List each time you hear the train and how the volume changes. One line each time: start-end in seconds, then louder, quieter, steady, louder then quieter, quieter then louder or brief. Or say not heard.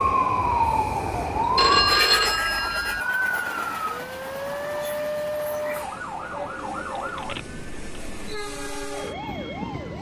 0.0-9.9 quieter then louder.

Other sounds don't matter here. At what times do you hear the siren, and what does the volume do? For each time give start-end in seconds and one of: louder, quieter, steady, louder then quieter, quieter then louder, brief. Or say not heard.
0.0-9.9 quieter.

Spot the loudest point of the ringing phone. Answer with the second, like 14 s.
2 s.